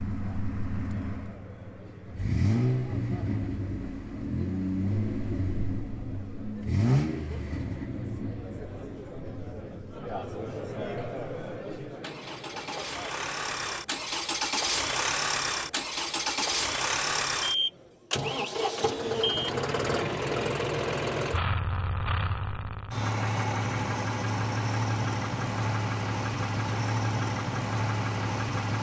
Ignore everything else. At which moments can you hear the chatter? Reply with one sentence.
You can hear the chatter from 0.1 to 18.3 s.